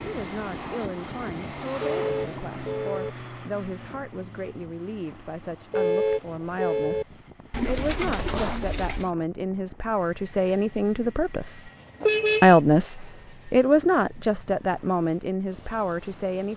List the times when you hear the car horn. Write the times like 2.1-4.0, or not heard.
1.8-3.1, 5.7-7.0, 12.0-12.6.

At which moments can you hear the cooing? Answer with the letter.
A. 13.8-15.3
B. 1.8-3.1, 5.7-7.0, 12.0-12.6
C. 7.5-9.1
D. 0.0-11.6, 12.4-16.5
C.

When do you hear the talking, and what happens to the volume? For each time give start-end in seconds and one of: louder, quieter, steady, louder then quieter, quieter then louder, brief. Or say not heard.
0.0-11.6 louder
12.4-16.5 louder then quieter.